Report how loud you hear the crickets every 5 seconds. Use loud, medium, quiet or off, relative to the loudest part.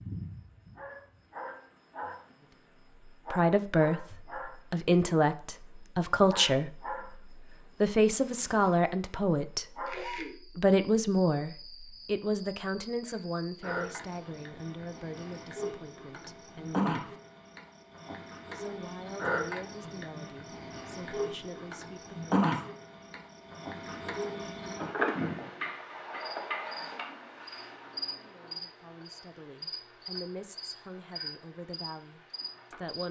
medium, medium, medium, loud, loud, loud, medium.